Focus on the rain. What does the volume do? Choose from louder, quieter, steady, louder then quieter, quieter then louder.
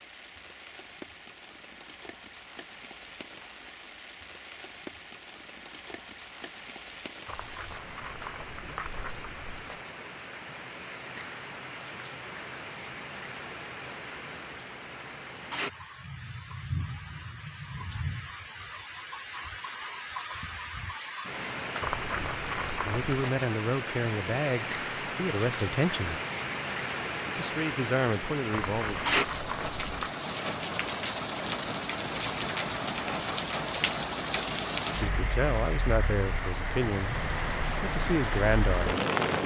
louder.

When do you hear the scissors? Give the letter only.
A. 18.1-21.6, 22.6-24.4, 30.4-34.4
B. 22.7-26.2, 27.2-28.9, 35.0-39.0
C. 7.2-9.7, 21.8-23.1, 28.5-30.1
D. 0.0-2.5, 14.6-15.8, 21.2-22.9
C.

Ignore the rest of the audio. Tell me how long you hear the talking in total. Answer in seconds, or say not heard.
9 s.